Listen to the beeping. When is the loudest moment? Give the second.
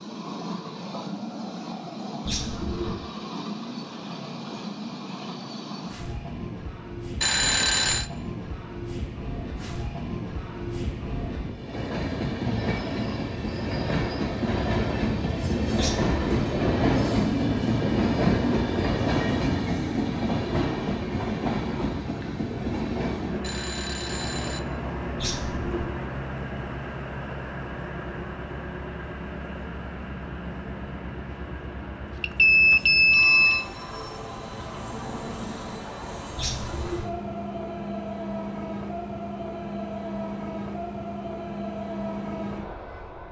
33 s.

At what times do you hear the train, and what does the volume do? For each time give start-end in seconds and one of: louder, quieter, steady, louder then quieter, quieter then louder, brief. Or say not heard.
0.0-43.2 louder then quieter.